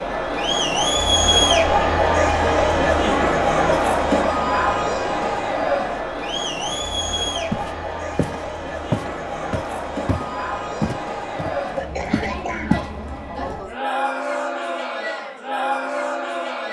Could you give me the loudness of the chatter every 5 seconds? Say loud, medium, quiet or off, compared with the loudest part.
loud, medium, medium, medium.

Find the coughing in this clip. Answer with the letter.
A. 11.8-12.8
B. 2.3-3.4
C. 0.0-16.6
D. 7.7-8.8
A.